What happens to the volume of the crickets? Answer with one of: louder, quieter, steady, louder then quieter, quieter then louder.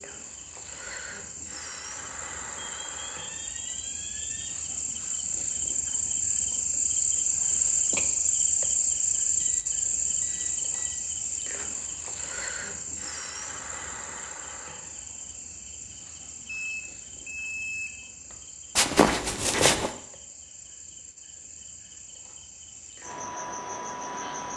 louder then quieter.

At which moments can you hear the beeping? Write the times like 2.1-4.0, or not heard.
2.5-4.5, 9.4-10.9, 16.4-18.4.